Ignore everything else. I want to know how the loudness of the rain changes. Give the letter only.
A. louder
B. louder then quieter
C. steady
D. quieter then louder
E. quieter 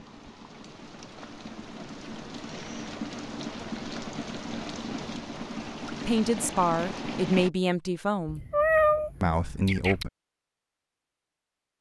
A.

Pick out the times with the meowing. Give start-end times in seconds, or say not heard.
8.2-10.1.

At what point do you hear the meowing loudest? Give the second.
9 s.